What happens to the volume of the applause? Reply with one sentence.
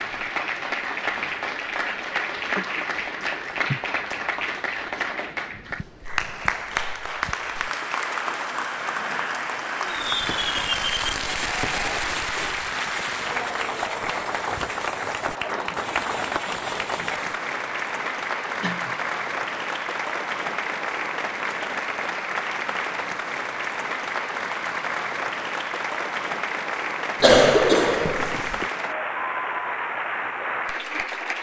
The volume of the applause stays about the same.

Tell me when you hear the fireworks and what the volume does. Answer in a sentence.
The fireworks can be heard from 9.8 to 17.4 s, getting quieter.